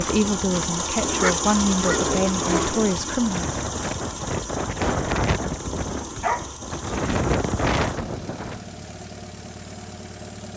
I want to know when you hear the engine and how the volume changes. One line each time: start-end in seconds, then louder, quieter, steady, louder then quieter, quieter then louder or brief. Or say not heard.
0.0-10.5 quieter.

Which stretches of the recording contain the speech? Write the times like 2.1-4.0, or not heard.
0.0-3.5.